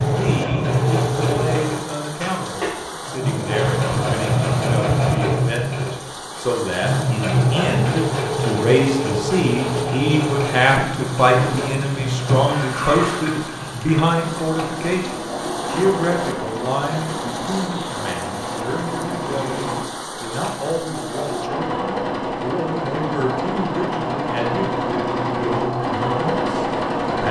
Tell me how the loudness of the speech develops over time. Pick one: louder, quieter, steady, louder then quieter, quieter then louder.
louder then quieter.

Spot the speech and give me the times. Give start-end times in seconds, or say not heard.
0.1-27.2.